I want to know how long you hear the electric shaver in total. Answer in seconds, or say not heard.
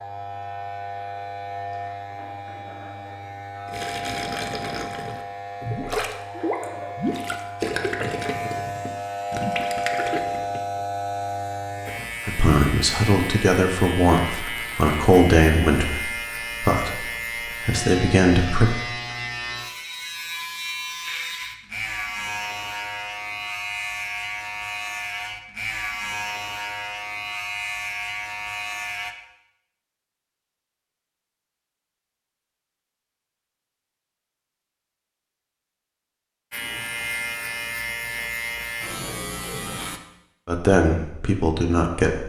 33 s.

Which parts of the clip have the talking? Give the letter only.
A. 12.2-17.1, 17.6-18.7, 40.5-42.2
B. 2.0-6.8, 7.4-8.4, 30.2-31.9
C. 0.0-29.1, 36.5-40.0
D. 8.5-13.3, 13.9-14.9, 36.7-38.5
A.